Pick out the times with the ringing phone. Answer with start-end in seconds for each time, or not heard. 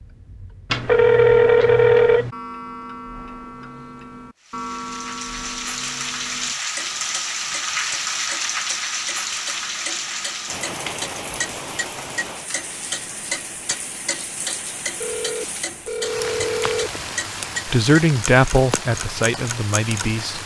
0.7-2.3, 15.0-16.9.